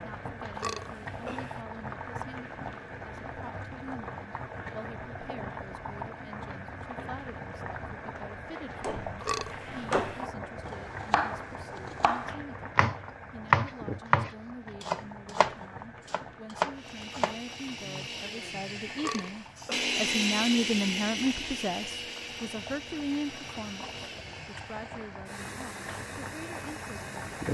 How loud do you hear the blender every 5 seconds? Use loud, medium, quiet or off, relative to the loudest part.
off, off, off, loud, loud, medium.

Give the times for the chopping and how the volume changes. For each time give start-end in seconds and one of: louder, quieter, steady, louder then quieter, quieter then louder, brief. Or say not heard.
8.8-18.1 louder then quieter.